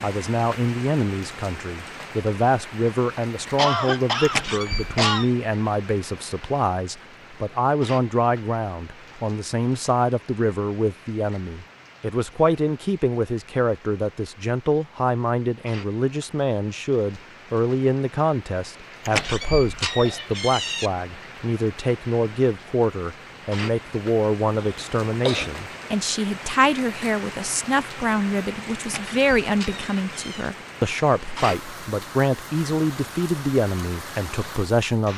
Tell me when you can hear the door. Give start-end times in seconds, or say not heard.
4.2-5.3, 19.1-20.9, 28.8-30.5.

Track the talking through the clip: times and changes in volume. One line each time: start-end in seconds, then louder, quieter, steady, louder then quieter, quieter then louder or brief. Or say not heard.
0.0-35.1 steady.